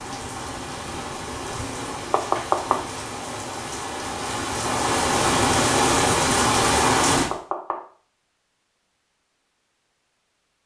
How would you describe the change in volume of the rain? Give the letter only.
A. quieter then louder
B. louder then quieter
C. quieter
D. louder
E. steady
D.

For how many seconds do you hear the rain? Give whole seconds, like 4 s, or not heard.
7 s.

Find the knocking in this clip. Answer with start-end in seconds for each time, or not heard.
2.1-2.8, 7.1-7.8.